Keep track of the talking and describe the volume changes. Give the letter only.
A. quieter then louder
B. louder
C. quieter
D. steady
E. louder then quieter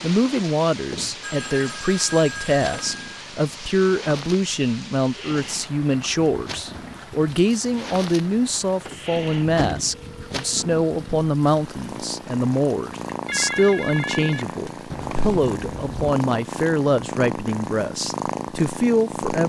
D.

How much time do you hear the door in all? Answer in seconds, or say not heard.
3 s.